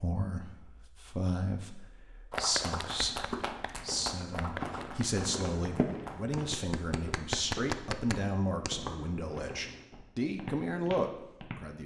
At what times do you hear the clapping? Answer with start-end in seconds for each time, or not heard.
2.3-8.8.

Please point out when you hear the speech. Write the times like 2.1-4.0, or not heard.
0.0-11.8.